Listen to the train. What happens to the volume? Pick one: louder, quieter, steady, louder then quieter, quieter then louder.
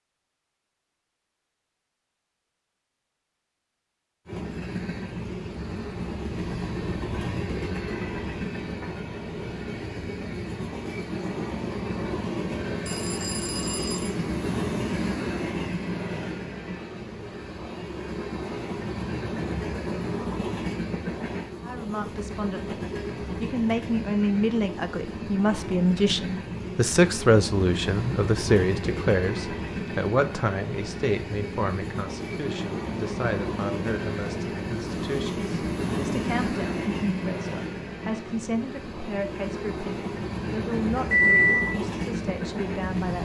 steady.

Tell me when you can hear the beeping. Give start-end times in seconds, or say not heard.
12.8-14.1, 41.1-41.6.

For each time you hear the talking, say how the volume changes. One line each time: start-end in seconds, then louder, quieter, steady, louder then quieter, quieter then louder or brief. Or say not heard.
21.6-43.2 quieter.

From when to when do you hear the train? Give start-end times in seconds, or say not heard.
4.2-43.2.